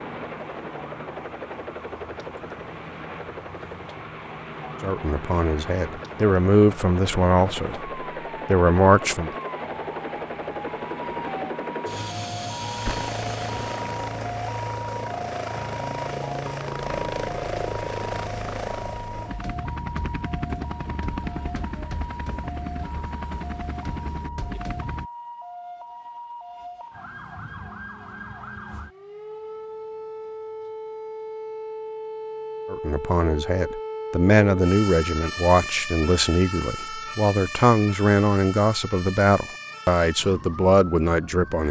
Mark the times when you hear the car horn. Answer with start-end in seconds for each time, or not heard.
not heard.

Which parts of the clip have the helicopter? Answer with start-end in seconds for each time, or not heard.
0.0-25.1.